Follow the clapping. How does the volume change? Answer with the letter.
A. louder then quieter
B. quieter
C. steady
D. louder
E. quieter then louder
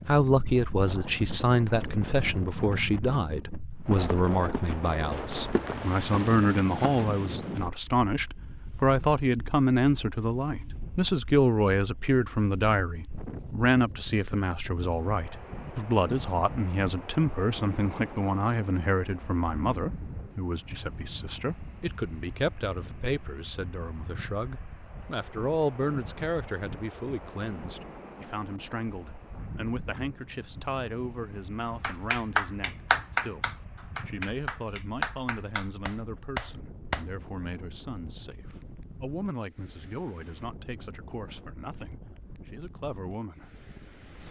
E.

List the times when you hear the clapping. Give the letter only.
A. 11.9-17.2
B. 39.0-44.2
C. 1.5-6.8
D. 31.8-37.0
D.